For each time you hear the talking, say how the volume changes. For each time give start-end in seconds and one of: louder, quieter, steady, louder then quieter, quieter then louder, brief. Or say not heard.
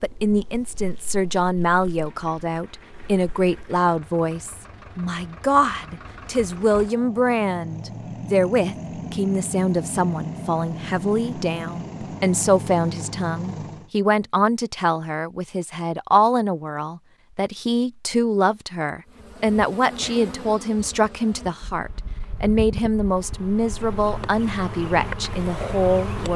0.0-26.3 steady.